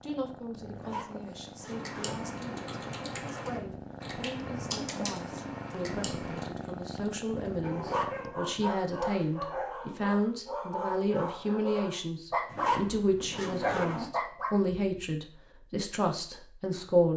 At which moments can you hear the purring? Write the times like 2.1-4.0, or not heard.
0.0-8.3.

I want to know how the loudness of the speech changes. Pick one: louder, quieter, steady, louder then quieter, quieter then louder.
louder.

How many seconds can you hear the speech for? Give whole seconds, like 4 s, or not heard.
17 s.